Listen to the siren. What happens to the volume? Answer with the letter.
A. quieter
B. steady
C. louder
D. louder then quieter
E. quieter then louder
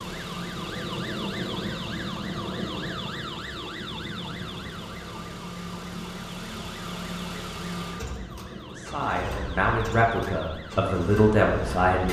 A.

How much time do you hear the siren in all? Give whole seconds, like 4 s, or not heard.
12 s.